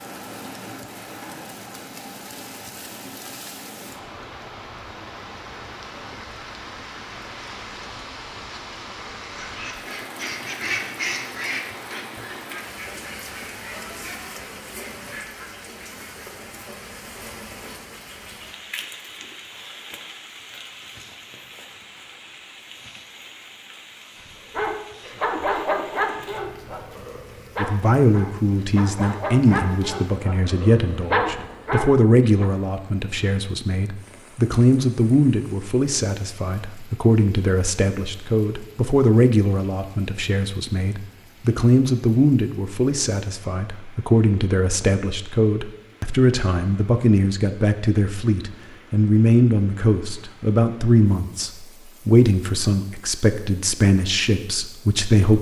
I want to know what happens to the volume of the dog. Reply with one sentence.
The loudness of the dog goes down, then up.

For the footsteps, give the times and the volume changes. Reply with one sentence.
You can't hear the footsteps here.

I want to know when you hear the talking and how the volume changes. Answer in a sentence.
The talking can be heard from 27.6 to 55.3 s, at a steady volume.